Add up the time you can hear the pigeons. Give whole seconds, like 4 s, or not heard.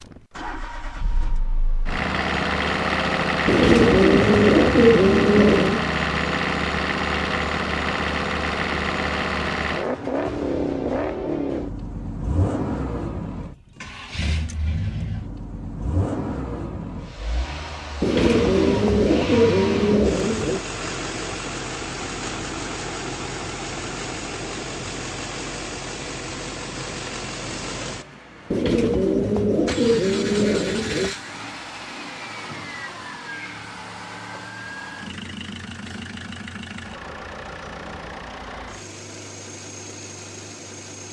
8 s.